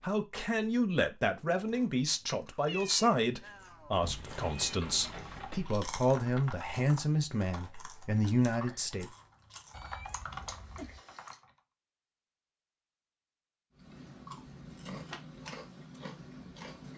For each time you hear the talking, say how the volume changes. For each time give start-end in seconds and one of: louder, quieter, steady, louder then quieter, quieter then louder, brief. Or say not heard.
0.0-9.1 steady.